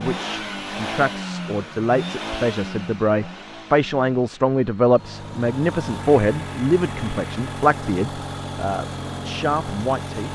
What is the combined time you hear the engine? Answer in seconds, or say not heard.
10 s.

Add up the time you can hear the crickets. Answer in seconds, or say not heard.
not heard.